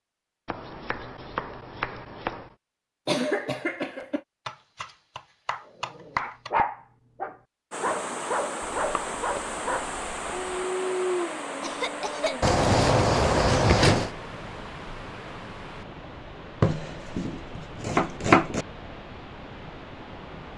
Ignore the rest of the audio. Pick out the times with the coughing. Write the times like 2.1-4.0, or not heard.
3.0-4.2, 11.6-12.5.